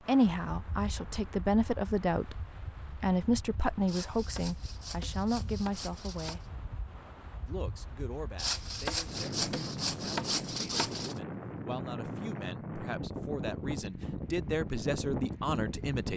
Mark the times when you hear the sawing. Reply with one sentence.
You can hear the sawing from 3.9 to 6.5 s and from 8.3 to 11.2 s.